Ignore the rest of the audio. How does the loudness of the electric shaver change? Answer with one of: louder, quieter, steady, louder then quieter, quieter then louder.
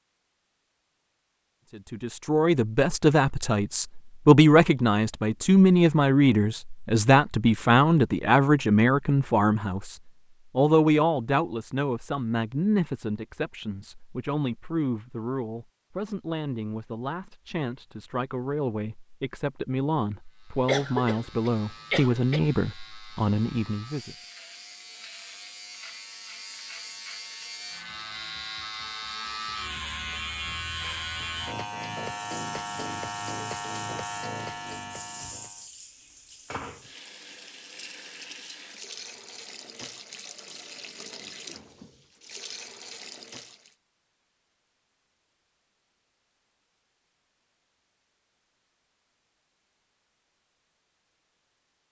louder.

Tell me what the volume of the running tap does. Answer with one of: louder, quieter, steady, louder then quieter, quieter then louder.
steady.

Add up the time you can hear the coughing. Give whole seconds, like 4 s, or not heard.
2 s.